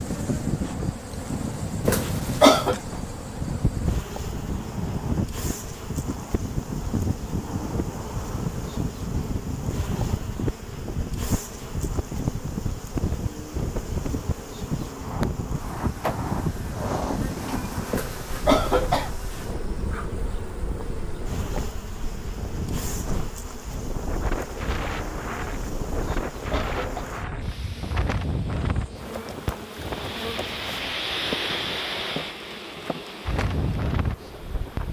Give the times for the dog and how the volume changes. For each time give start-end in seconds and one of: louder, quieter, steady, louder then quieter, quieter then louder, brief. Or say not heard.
not heard.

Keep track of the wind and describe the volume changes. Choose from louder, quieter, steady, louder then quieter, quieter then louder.
steady.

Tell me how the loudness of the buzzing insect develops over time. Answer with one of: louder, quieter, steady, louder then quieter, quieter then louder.
steady.